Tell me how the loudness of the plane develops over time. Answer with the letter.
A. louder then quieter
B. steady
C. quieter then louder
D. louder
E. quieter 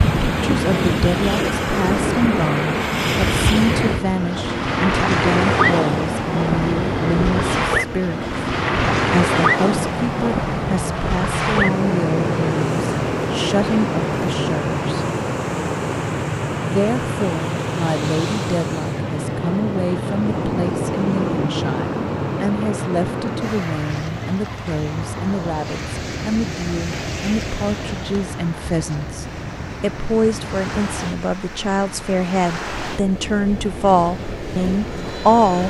E.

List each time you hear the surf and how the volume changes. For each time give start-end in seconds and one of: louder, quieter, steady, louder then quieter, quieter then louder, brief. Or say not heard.
0.0-35.6 quieter.